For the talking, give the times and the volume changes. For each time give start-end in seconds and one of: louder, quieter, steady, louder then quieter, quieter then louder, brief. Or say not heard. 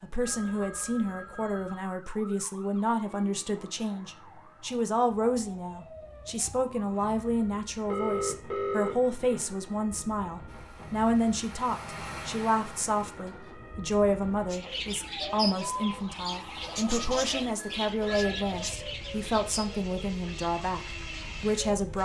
0.0-22.0 steady.